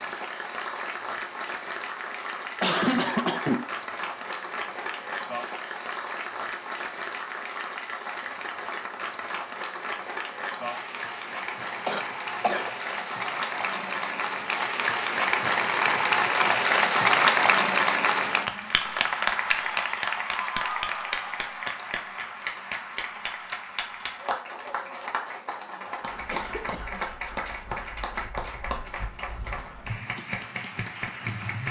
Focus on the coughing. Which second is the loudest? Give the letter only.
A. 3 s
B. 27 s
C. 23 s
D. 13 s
A.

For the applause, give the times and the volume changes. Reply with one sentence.
You can hear the applause from 0.0 to 31.6 s, getting louder then quieter.